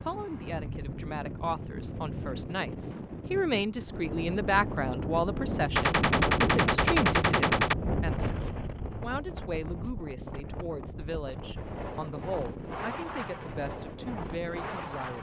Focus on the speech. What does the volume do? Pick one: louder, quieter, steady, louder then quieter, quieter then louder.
louder then quieter.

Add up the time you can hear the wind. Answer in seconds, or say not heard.
15 s.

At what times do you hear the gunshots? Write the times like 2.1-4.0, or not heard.
5.8-7.8.